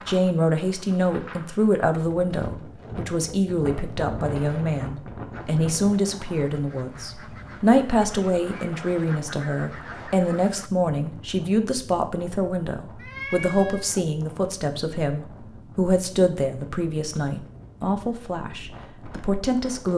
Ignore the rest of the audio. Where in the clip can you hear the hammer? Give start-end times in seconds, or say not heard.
not heard.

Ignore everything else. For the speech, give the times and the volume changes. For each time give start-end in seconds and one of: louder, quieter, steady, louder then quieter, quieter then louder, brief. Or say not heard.
0.1-19.9 steady.